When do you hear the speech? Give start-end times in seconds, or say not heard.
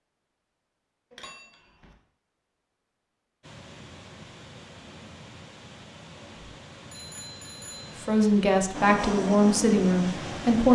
8.0-10.6.